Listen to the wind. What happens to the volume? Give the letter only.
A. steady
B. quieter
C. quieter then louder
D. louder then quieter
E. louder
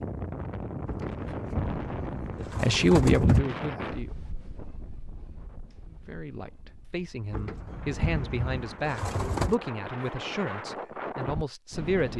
C.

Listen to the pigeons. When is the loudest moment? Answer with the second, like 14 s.
3 s.